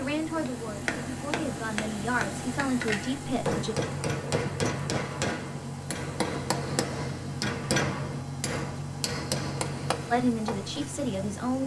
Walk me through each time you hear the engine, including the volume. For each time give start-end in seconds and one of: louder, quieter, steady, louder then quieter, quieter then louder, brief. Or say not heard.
0.0-11.6 steady.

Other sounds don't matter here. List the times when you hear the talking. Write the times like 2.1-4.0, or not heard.
0.0-3.8, 10.1-11.6.